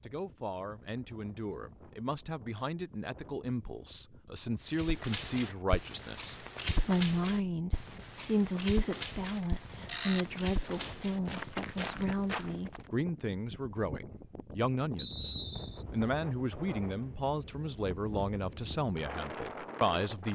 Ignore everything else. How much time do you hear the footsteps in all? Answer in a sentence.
The footsteps can be heard for 8 seconds in total.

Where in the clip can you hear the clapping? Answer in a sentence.
The clapping can't be heard in this clip.